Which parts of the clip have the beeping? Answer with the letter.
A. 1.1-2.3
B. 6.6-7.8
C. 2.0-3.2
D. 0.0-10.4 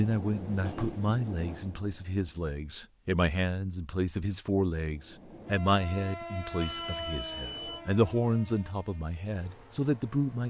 B.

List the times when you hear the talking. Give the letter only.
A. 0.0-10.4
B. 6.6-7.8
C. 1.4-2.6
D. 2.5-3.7
A.